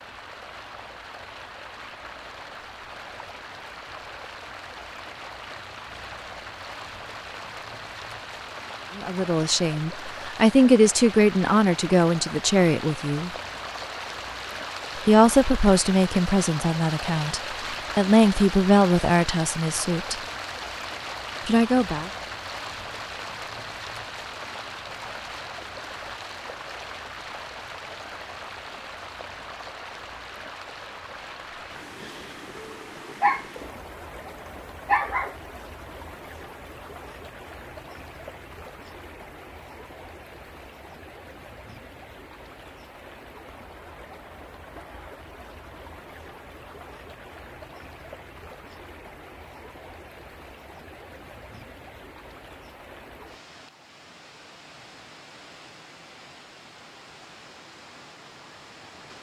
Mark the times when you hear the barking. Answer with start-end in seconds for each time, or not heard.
32.5-33.7, 34.9-35.4.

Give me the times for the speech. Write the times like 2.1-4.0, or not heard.
8.9-13.3, 14.9-20.1, 21.4-22.1.